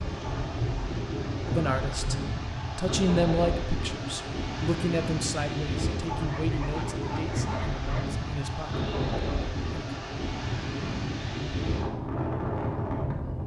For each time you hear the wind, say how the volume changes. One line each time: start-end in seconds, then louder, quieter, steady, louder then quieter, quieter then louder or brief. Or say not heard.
0.0-13.4 steady.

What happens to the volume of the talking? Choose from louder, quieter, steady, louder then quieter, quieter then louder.
quieter.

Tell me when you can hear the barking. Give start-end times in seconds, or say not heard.
6.1-8.1.